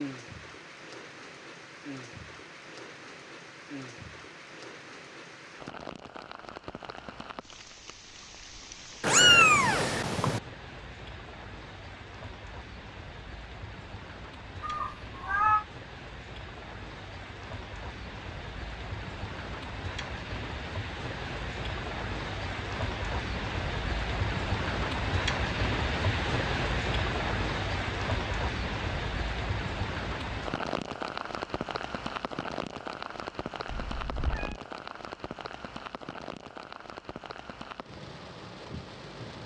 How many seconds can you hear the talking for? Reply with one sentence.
You can't hear the talking here.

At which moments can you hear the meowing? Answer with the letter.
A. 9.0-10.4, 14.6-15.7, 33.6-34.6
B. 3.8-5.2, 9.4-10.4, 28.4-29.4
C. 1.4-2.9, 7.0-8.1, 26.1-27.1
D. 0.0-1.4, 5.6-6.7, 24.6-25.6
A.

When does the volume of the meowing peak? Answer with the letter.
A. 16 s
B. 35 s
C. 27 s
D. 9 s
D.